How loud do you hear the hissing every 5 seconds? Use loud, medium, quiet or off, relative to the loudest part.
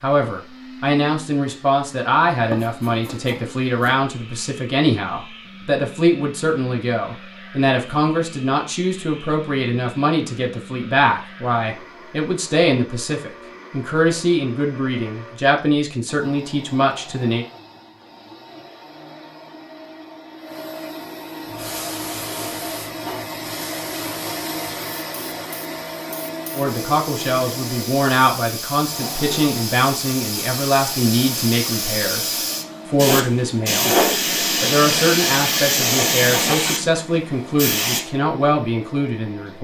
off, off, off, off, quiet, medium, loud, loud.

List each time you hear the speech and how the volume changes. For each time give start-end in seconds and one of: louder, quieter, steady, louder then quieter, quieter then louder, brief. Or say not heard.
0.0-17.4 steady
26.5-34.0 steady
34.6-39.5 steady.